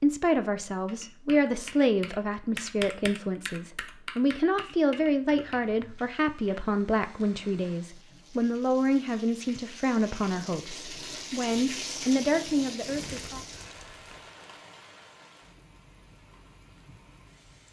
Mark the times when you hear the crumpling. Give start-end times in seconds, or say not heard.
12.8-14.7.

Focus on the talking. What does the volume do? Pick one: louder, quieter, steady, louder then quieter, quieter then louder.
steady.